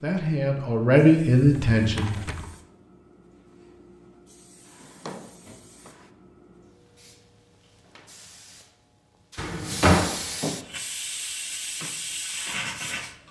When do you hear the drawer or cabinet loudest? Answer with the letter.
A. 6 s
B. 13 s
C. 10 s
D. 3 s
C.